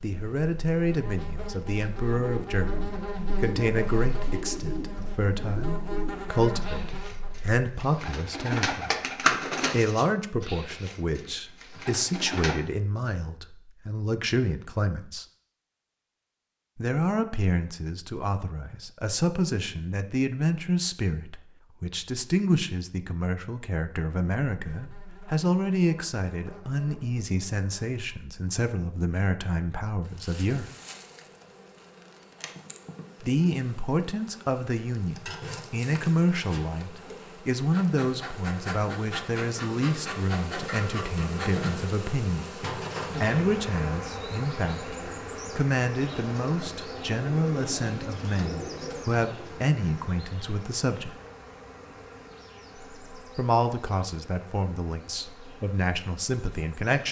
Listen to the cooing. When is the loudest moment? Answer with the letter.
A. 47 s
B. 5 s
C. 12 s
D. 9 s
D.